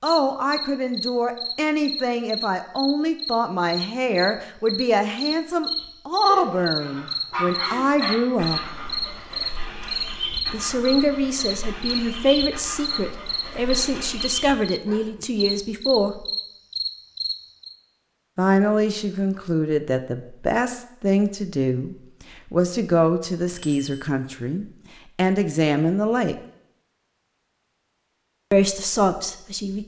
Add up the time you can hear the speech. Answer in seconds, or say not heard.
24 s.